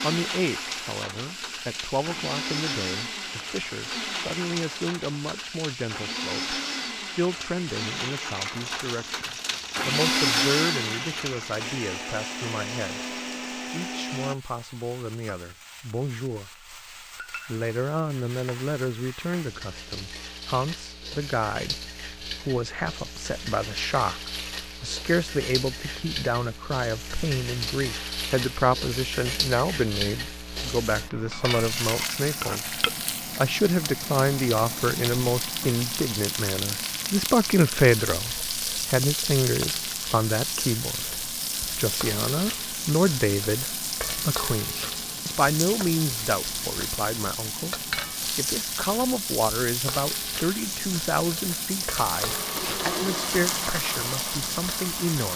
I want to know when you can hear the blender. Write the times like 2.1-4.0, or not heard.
0.0-14.3, 52.1-55.3.